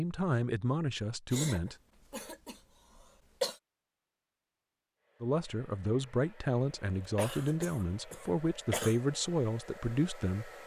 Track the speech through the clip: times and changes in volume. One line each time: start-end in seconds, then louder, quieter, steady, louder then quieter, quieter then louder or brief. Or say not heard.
0.0-1.8 brief
5.2-10.5 steady.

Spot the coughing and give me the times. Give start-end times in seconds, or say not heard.
1.3-3.6, 7.0-9.0.